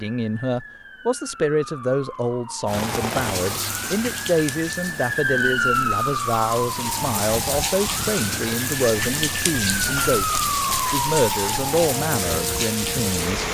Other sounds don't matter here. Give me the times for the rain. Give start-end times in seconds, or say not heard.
2.6-13.4.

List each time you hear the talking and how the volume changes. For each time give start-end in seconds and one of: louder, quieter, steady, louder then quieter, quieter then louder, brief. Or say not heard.
0.0-13.4 steady.